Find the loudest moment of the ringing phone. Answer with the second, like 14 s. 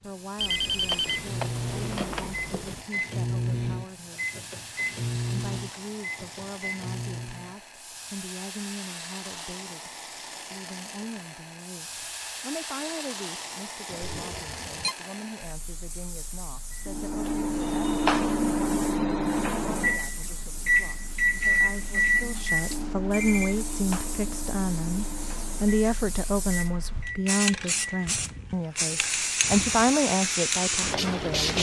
1 s.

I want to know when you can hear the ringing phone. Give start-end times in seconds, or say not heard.
0.3-2.9, 13.9-14.9, 22.6-23.6.